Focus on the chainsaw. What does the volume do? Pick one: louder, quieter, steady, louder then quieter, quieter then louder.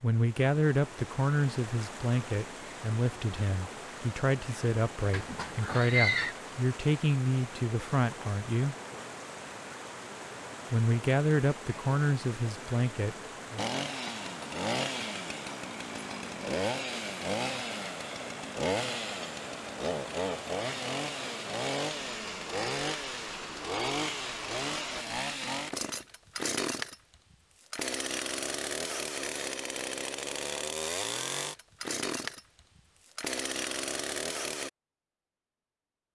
steady.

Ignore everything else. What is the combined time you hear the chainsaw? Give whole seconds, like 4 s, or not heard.
21 s.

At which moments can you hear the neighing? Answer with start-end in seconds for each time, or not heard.
5.1-6.3.